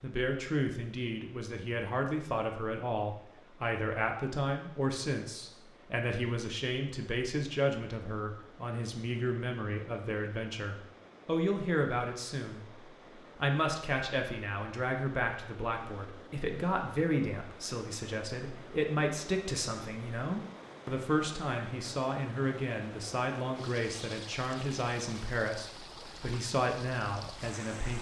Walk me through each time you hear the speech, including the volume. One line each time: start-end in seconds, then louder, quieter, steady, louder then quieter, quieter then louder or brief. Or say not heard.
0.0-27.9 steady.